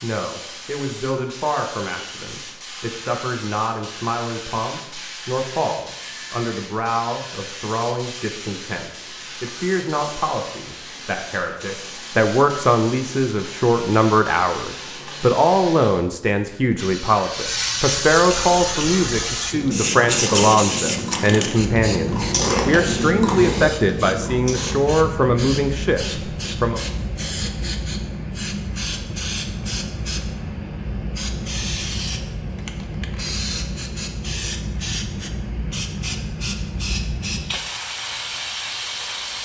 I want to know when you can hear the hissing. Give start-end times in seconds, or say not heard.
0.0-39.4.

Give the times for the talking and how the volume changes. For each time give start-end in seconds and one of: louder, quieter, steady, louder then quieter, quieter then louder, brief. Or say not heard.
0.0-26.8 louder.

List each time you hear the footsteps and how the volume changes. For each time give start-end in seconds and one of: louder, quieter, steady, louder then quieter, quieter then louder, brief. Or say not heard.
not heard.